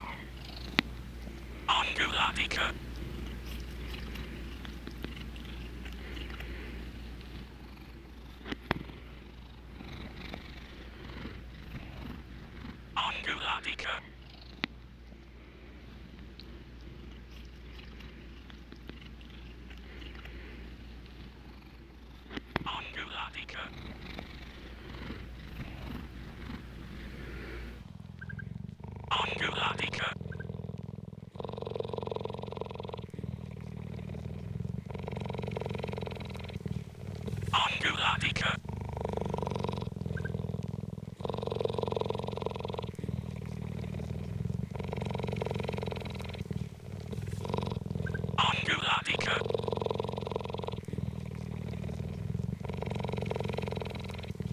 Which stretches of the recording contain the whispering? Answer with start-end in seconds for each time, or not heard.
1.6-2.8, 12.9-14.0, 22.6-23.7, 29.1-30.1, 37.5-38.6, 48.4-49.5.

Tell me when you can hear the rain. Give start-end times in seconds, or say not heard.
not heard.